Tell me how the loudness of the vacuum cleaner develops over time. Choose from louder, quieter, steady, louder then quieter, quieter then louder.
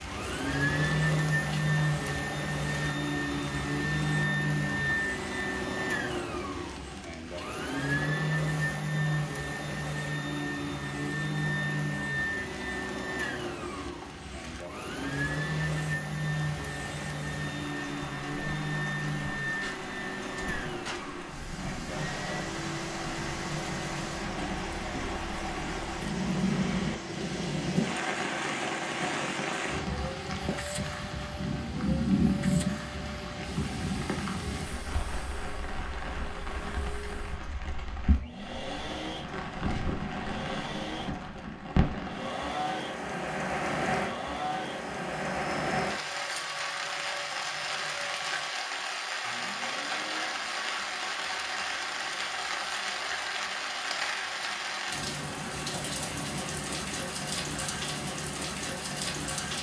quieter.